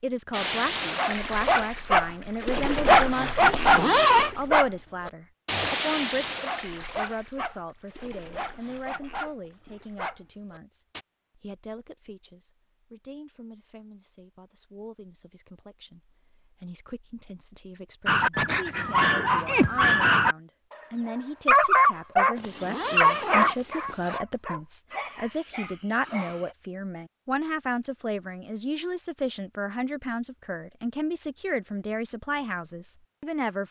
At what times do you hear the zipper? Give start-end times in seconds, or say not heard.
3.5-4.3, 22.4-24.2.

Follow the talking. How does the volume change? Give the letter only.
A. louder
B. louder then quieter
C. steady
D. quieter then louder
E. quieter
D.